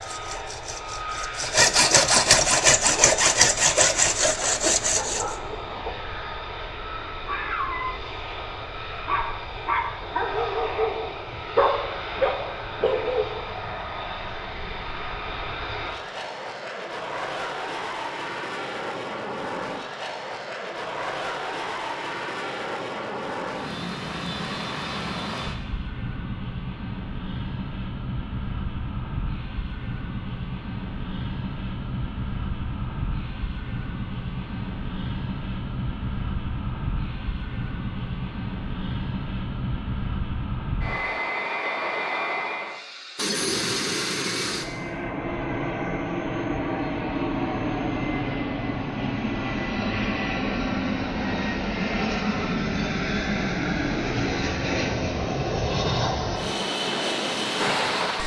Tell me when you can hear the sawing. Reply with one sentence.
You can hear the sawing from 0.0 to 5.3 s.